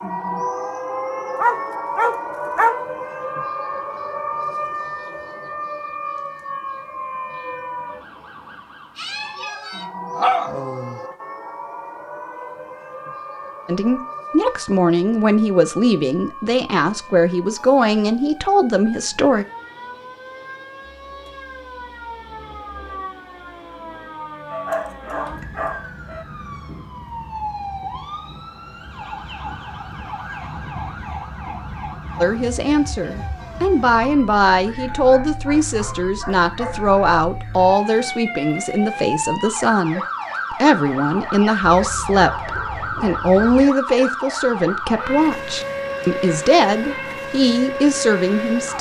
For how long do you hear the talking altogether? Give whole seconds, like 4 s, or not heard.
22 s.